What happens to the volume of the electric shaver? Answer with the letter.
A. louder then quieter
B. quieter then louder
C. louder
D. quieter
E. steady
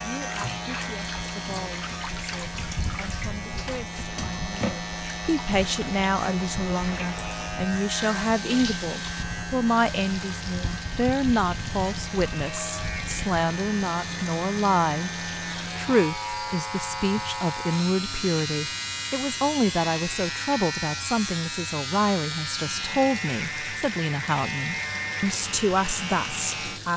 E.